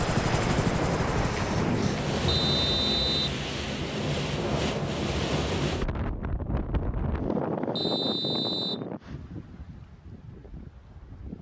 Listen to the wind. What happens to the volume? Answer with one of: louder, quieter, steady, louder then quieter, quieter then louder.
quieter.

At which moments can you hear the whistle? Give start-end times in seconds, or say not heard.
2.2-3.2, 7.8-8.8.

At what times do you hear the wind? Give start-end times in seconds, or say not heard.
0.0-11.3.